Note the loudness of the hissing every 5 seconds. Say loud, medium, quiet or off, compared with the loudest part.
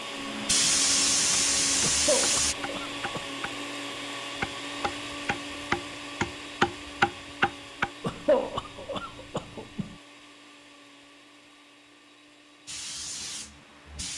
loud, off, quiet.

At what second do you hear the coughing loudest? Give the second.
8 s.